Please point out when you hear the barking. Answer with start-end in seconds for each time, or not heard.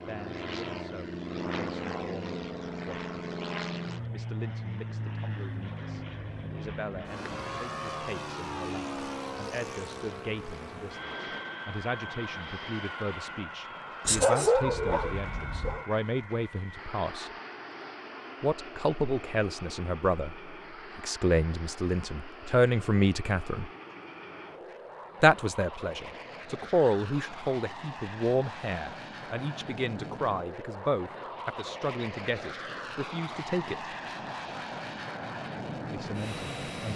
14.1-15.8.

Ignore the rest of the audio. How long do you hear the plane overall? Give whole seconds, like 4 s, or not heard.
37 s.